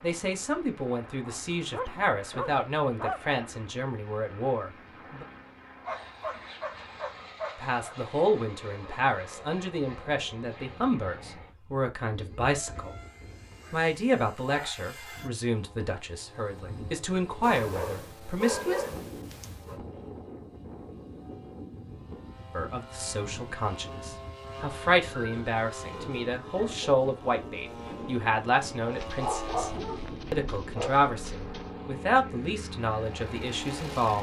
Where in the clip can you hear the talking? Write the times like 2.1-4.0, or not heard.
0.0-5.2, 7.6-12.9, 13.7-18.9, 22.6-29.7, 30.3-34.1.